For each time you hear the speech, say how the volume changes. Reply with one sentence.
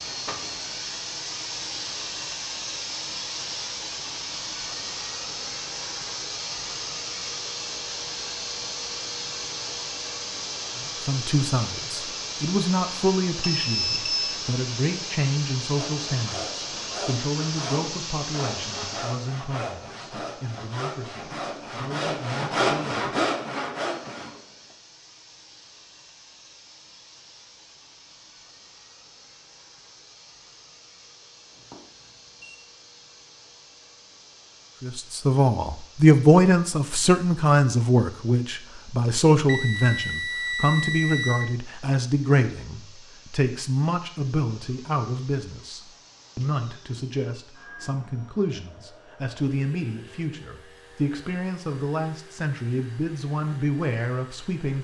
You can hear the speech from 11.1 to 23.1 s, getting quieter; and from 34.8 to 54.8 s, getting quieter.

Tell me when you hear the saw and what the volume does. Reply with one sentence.
The saw can be heard from 15.8 to 24.8 s, getting louder.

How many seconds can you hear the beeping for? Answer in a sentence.
The beeping can be heard for 4 seconds in total.